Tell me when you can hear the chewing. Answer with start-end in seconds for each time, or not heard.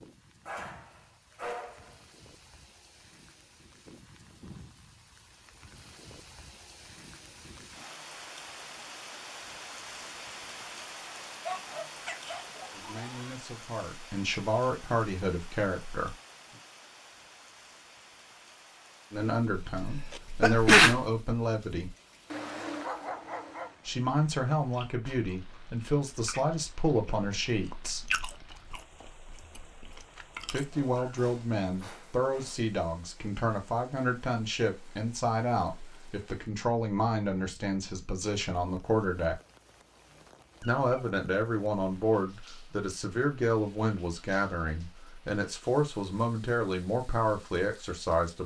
24.6-30.7.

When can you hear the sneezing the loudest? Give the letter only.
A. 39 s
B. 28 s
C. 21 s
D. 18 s
C.